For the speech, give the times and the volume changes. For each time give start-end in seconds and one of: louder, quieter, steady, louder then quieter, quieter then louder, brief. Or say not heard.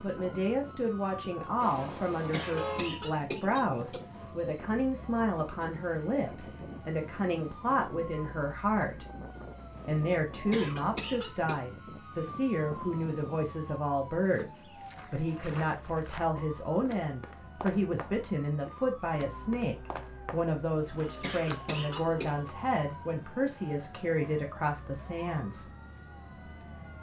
0.0-9.1 steady
9.8-25.7 steady.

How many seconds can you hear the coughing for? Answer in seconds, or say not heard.
4 s.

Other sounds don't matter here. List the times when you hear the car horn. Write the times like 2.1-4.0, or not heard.
1.6-2.9.